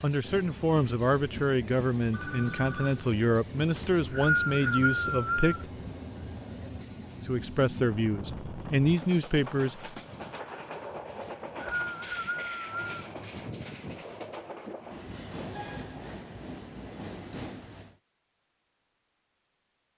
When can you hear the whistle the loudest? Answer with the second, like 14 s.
4 s.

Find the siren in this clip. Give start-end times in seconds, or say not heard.
not heard.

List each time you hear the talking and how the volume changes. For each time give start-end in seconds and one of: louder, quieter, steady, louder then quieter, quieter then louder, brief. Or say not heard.
0.0-5.7 steady
7.2-9.9 brief.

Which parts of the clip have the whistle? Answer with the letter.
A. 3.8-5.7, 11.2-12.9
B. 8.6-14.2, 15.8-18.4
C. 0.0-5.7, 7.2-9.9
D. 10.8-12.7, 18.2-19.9
A.